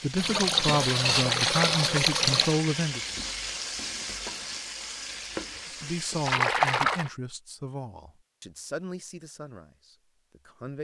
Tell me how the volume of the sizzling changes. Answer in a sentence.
The loudness of the sizzling goes down.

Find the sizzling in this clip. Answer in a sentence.
The sizzling can be heard from 0.0 to 6.4 s.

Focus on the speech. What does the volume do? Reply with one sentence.
The volume of the speech goes down.